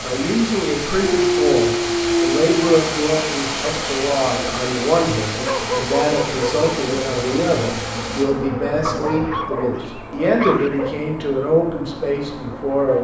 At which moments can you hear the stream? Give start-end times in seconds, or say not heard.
0.0-8.2.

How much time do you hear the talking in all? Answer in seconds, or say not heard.
13 s.